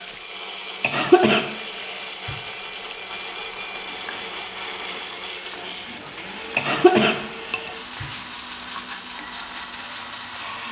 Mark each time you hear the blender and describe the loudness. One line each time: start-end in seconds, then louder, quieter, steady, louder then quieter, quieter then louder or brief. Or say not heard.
0.0-10.6 steady.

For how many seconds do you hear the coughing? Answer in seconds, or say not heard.
3 s.